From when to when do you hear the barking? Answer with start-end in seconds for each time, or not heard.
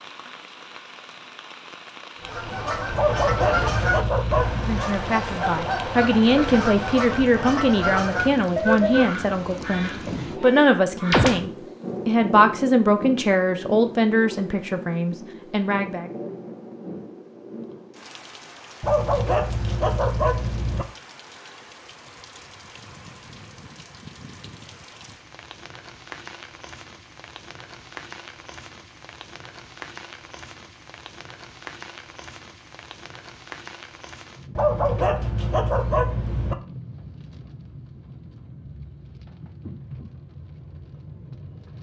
2.9-4.9, 18.8-20.9, 34.5-36.5.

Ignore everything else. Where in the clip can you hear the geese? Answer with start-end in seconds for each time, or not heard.
2.2-11.5.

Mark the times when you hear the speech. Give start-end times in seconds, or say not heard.
4.7-16.1.